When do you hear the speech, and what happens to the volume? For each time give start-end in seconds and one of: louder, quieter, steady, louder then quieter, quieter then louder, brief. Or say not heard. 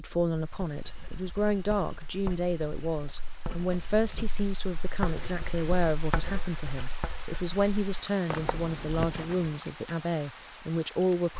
0.0-11.3 steady.